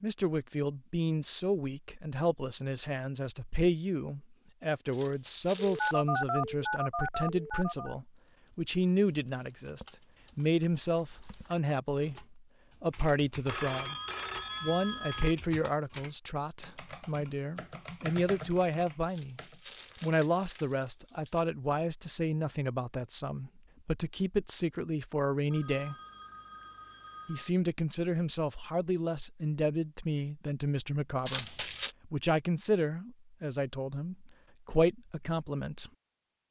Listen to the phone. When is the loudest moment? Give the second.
6 s.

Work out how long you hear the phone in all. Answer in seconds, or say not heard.
6 s.